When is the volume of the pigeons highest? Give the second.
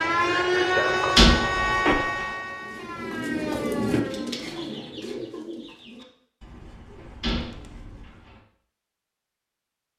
4 s.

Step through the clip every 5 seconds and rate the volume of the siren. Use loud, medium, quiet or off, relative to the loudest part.
loud, off.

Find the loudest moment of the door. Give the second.
1 s.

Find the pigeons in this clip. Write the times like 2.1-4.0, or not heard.
2.4-8.4.